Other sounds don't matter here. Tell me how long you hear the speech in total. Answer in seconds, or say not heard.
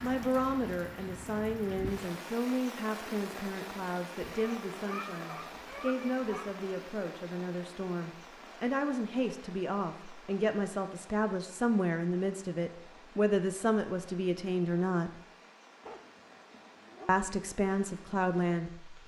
17 s.